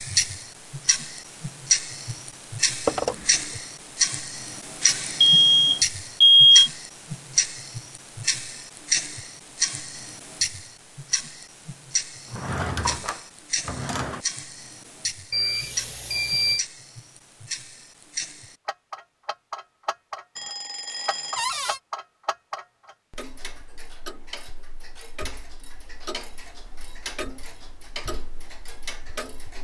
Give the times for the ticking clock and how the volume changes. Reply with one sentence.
The ticking clock can be heard from 0.0 to 29.6 s, getting quieter.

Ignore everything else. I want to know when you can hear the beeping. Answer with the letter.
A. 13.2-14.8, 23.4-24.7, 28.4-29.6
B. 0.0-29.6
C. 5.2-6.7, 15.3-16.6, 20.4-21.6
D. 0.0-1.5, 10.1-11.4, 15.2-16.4
C.